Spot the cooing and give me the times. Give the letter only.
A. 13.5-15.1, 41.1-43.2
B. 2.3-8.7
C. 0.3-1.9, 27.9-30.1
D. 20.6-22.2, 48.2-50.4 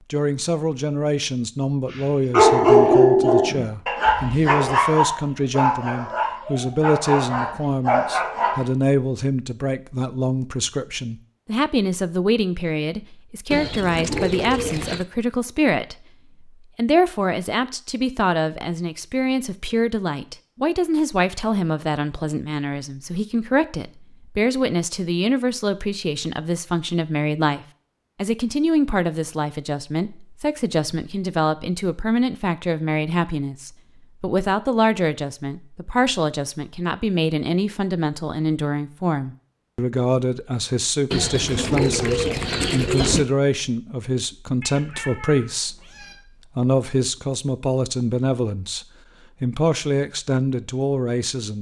A.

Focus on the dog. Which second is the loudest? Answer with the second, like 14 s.
3 s.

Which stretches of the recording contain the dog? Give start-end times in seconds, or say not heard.
2.3-8.7.